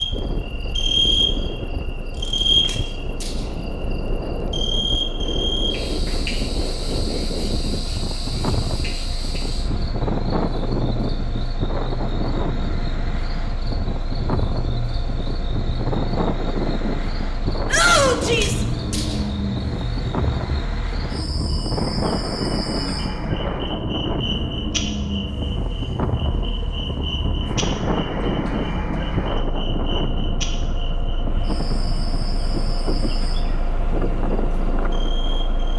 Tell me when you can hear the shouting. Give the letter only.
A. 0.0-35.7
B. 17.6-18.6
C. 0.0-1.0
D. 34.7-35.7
B.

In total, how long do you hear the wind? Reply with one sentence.
The wind can be heard for 36 seconds in total.